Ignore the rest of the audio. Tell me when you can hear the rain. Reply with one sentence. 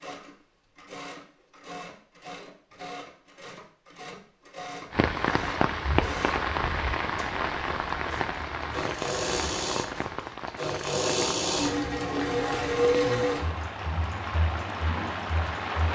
You can hear the rain from 4.9 to 15.8 s.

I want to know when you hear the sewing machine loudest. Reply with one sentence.
The loudest moment of the sewing machine is at 13 seconds.